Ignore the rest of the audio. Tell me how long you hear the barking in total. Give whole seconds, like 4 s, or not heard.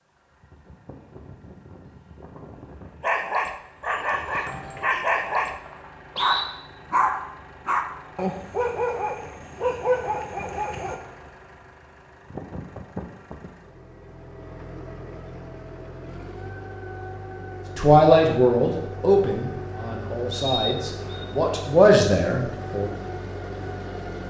8 s.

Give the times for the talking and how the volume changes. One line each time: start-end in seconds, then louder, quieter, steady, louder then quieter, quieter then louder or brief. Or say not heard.
17.8-22.9 quieter then louder.